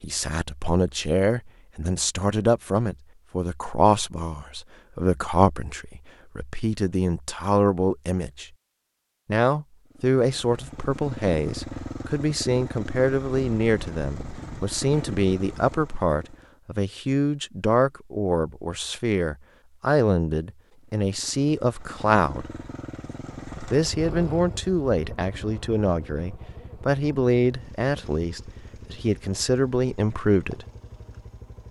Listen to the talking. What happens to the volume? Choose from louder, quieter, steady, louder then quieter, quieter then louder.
steady.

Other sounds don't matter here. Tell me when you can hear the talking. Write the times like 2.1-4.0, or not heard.
0.0-8.4, 9.2-22.4, 23.7-30.6.